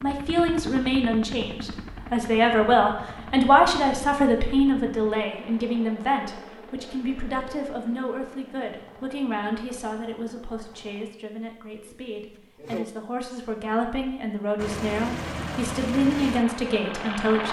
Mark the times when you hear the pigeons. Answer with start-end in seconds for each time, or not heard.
11.8-12.8.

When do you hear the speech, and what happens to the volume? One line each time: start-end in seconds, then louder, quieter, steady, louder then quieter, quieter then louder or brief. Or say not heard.
0.0-17.4 quieter then louder.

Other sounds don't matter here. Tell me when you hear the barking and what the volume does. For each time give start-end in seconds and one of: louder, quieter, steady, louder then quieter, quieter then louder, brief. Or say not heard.
not heard.